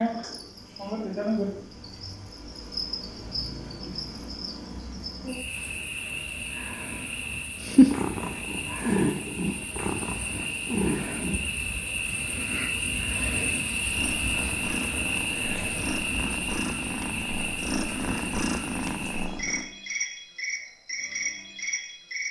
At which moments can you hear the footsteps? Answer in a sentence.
You can't hear the footsteps here.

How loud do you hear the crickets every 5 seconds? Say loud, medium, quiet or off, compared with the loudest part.
loud, medium, loud, loud, loud.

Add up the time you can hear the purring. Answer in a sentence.
The purring can be heard for 10 seconds in total.